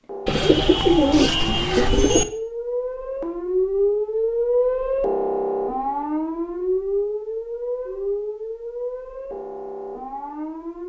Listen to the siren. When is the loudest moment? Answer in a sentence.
The volume of the siren peaks at 4 seconds.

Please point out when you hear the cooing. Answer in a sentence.
You can hear the cooing from 0.2 to 2.2 s.